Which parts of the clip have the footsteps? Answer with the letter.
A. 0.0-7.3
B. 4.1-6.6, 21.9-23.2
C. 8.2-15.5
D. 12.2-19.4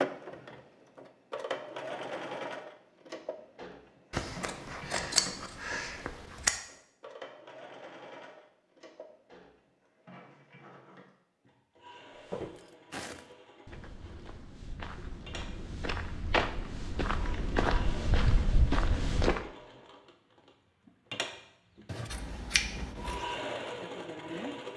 D.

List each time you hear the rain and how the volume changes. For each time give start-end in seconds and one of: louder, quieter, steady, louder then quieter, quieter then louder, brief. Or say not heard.
not heard.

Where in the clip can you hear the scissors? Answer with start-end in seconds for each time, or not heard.
4.1-6.6, 21.9-23.2.